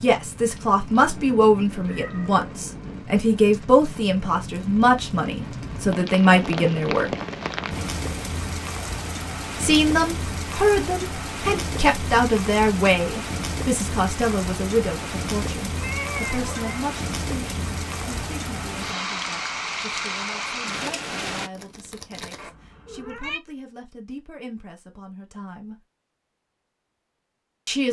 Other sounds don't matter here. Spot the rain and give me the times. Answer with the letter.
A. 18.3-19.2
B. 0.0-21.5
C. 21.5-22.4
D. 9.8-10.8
B.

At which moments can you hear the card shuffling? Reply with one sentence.
The card shuffling can be heard from 21.5 to 22.4 s.